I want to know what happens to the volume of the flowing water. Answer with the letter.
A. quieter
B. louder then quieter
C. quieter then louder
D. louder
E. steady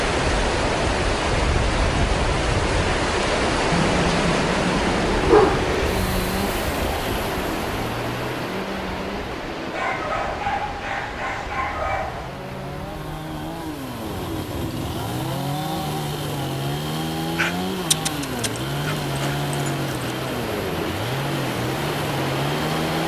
C.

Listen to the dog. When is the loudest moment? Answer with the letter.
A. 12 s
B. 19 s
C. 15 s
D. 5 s
D.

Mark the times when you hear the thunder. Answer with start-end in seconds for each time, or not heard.
not heard.